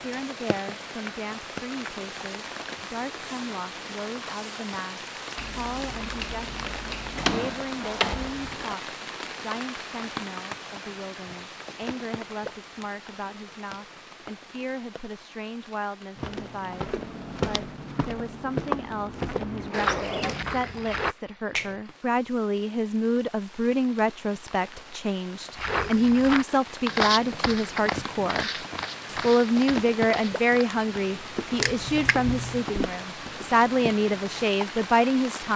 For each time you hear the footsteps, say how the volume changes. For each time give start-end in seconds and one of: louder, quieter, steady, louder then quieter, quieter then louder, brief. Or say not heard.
16.1-21.1 louder then quieter
25.6-34.5 quieter.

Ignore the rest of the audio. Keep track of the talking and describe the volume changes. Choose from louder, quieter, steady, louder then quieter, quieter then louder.
louder.